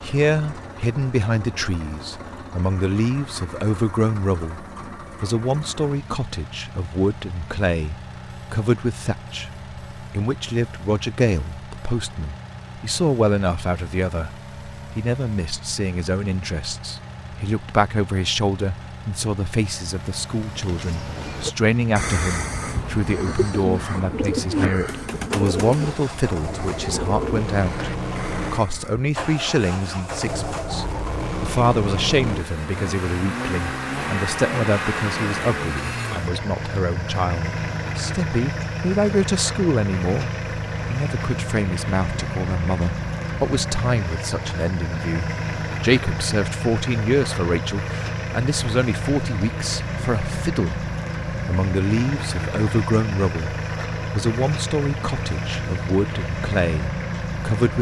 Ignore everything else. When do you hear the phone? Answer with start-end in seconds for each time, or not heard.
not heard.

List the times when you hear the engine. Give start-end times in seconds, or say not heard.
0.0-57.7.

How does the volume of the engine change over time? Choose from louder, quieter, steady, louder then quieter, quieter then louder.
louder.